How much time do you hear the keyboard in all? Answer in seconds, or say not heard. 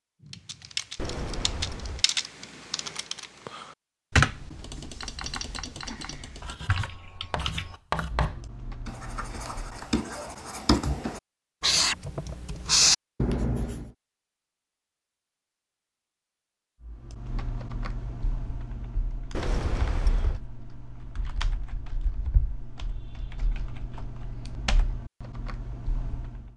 19 s.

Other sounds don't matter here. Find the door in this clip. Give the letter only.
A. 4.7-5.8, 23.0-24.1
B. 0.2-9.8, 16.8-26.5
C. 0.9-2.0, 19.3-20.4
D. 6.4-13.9
C.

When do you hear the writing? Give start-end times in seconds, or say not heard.
6.4-13.9.